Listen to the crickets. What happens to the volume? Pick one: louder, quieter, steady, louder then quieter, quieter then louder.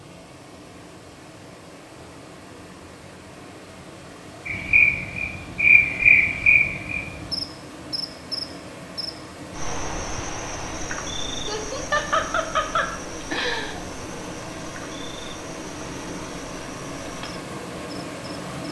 quieter.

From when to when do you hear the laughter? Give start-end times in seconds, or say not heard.
11.4-13.8.